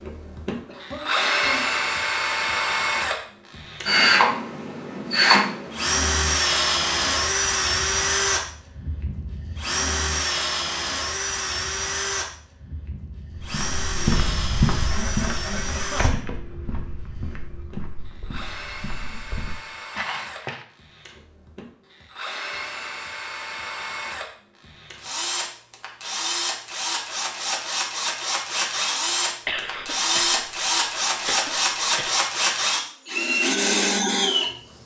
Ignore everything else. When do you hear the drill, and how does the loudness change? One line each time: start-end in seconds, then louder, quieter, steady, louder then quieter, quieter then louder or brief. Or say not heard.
0.0-34.8 quieter then louder.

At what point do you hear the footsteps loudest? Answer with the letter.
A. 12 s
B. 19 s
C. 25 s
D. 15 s
D.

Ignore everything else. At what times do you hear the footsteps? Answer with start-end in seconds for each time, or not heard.
13.4-20.6.